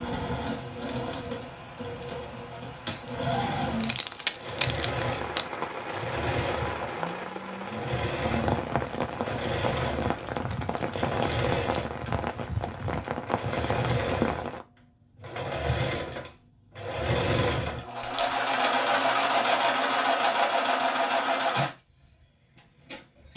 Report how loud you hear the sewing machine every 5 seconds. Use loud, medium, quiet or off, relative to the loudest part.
medium, medium, medium, loud, loud.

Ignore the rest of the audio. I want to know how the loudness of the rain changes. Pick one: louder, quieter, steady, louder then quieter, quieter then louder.
louder.